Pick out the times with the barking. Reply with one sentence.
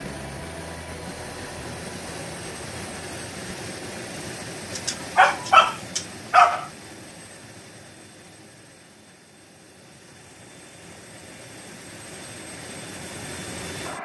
You can hear the barking from 4.8 to 6.7 s.